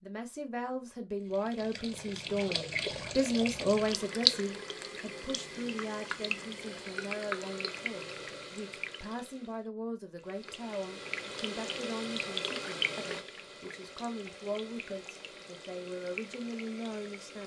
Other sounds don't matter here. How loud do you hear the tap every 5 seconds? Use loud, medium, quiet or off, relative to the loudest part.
loud, medium, medium, quiet.